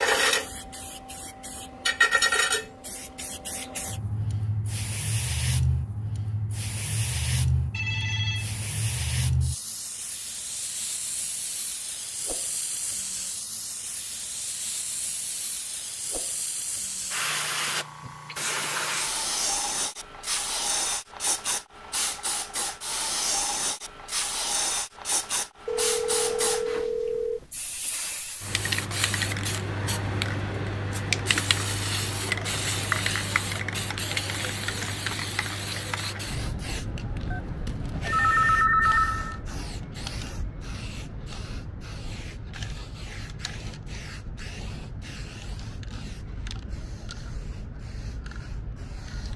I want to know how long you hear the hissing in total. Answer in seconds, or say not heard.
49 s.